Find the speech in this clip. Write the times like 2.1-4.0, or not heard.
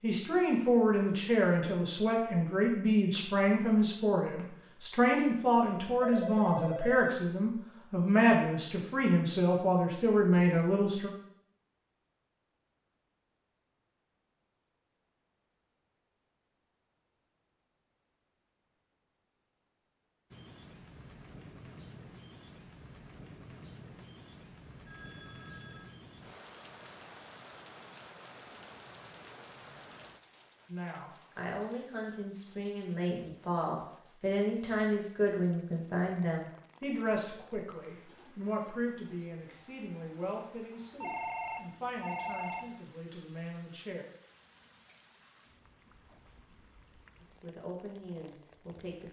0.0-11.1, 30.6-44.0, 47.2-49.0.